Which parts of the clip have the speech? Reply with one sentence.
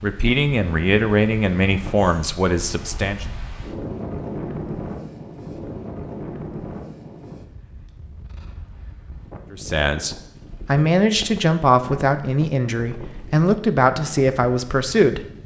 The speech can be heard from 0.0 to 3.2 s and from 9.5 to 15.4 s.